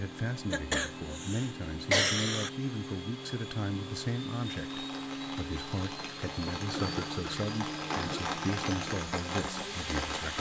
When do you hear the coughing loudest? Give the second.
2 s.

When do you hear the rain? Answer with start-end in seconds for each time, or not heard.
4.5-10.3.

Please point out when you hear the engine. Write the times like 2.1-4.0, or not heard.
0.0-10.3.